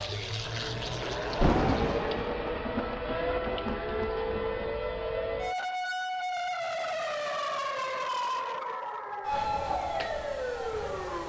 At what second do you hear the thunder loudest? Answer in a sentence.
The volume of the thunder peaks at 2 seconds.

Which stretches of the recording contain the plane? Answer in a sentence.
The plane can be heard from 0.0 to 2.3 s.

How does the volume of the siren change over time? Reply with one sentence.
The volume of the siren stays about the same.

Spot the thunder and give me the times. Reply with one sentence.
You can hear the thunder from 1.3 to 4.8 s.